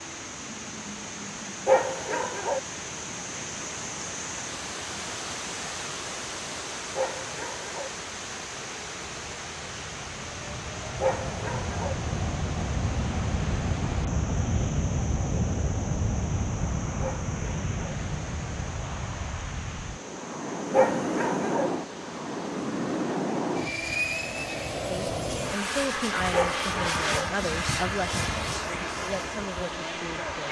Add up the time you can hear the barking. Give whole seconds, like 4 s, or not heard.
6 s.